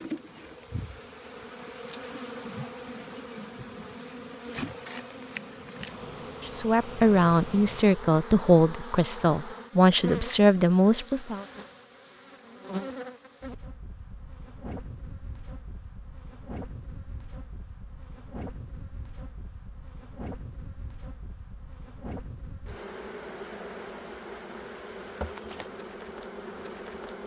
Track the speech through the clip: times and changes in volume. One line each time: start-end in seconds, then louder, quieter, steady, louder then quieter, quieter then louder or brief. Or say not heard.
6.4-11.4 steady.